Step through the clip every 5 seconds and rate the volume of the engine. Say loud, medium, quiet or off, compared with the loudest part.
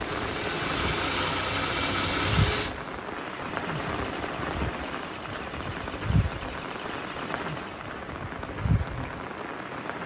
loud, quiet.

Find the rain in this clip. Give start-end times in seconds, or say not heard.
0.0-10.0.